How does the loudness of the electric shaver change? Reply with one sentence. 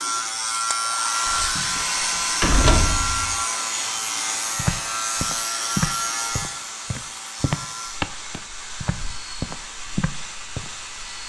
The volume of the electric shaver goes down.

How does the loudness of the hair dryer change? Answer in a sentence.
The loudness of the hair dryer goes down.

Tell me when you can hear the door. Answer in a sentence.
You can hear the door from 1.2 to 3.4 s.